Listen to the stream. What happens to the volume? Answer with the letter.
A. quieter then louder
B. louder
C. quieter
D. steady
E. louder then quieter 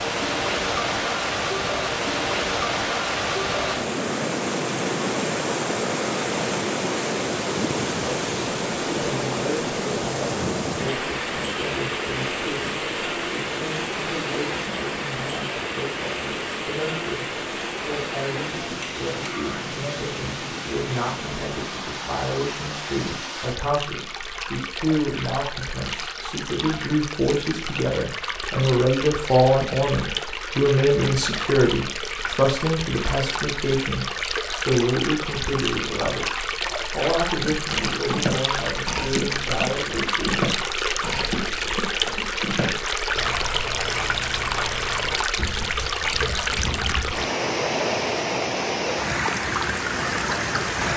A.